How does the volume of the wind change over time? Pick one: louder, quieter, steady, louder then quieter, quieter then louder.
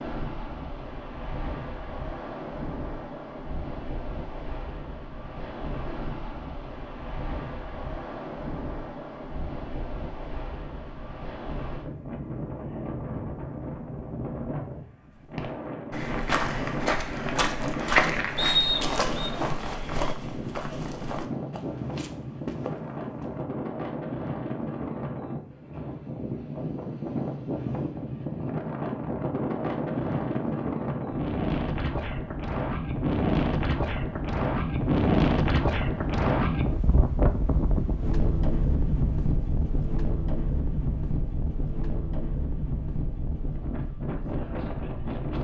louder.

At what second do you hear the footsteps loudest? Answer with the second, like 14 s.
18 s.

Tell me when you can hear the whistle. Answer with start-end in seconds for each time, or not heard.
18.4-19.4.